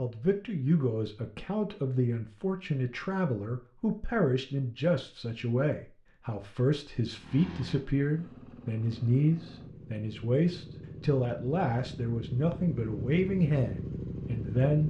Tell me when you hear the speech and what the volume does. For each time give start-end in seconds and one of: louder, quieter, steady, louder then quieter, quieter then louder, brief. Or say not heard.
0.0-14.8 steady.